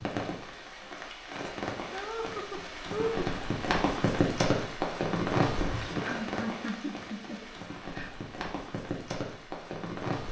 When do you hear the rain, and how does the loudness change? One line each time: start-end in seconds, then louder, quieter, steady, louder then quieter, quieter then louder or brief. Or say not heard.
0.0-10.2 louder then quieter.